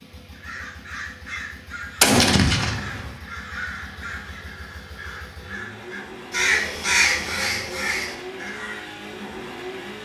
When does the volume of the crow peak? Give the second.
7 s.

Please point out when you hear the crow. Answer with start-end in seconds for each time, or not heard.
0.3-8.8.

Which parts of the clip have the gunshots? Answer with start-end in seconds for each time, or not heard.
2.0-3.1.